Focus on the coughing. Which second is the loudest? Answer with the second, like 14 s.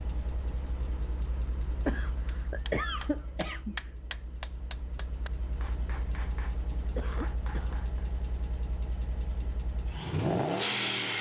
3 s.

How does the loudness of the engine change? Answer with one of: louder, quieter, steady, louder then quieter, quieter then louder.
quieter then louder.